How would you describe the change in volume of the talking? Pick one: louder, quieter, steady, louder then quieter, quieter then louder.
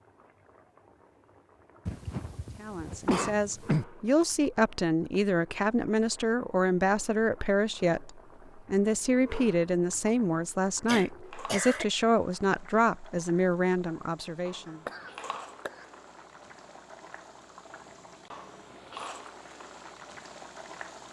steady.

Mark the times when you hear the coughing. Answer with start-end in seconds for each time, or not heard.
1.9-3.9, 10.8-11.8, 14.8-15.8.